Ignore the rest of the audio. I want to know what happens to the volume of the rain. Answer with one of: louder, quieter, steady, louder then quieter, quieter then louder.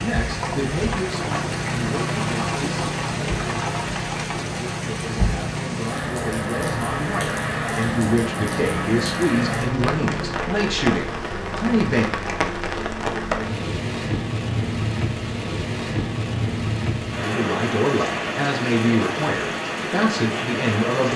steady.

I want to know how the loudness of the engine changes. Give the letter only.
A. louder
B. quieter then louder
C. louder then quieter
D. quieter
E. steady
E.